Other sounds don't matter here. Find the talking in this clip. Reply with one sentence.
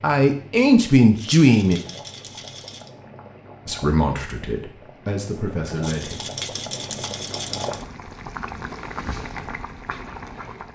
You can hear the talking from 0.0 to 1.8 s and from 3.6 to 6.2 s.